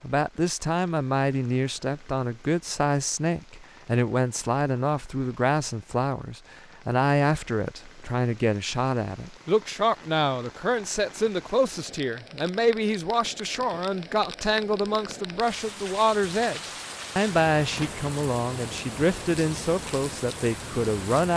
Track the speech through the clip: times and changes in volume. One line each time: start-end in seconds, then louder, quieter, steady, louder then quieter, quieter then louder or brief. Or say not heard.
0.0-21.3 steady.